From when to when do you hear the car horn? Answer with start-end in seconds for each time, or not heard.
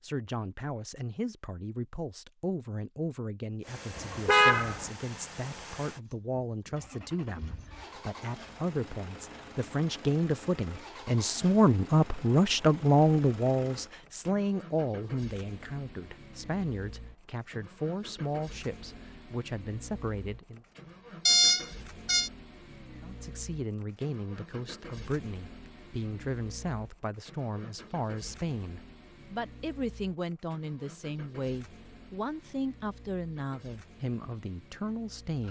4.0-4.9, 21.2-22.3.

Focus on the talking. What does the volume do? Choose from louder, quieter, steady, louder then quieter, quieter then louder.
louder then quieter.